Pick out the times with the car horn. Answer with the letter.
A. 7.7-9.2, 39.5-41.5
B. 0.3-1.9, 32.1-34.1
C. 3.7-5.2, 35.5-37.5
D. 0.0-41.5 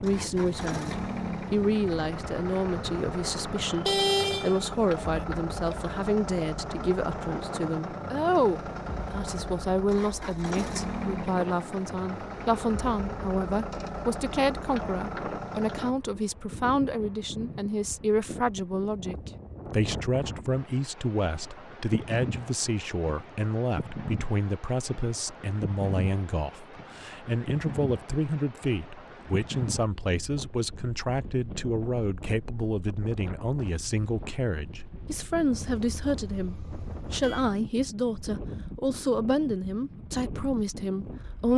C.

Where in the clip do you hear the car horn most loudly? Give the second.
4 s.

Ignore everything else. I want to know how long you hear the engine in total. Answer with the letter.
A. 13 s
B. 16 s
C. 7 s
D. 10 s
B.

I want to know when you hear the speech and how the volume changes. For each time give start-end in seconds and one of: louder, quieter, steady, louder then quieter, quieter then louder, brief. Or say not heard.
0.0-41.5 steady.